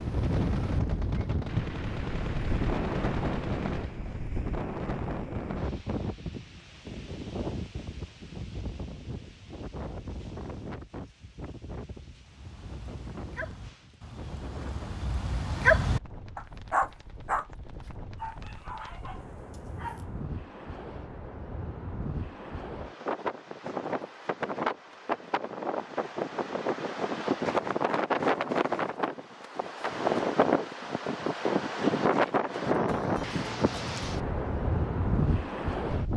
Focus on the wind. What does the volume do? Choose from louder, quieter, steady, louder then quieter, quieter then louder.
quieter then louder.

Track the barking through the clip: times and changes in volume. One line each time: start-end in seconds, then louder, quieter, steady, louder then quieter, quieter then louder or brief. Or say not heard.
12.2-20.1 louder then quieter.